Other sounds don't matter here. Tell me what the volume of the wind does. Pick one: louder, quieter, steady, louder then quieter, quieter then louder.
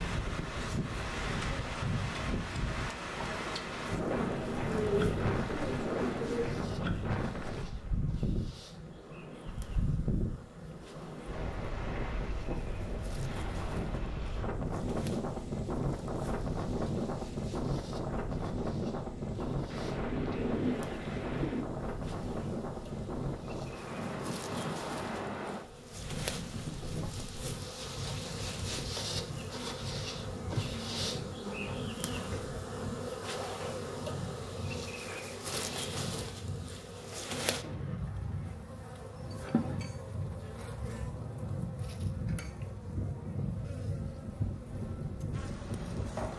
quieter.